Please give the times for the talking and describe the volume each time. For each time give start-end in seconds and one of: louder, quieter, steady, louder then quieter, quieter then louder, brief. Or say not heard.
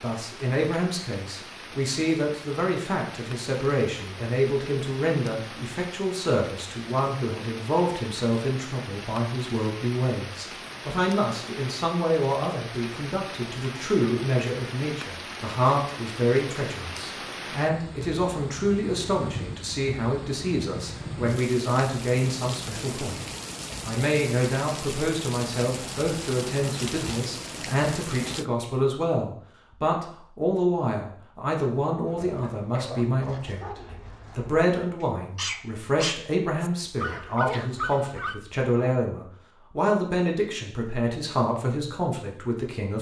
0.0-23.2 steady
23.9-42.9 steady.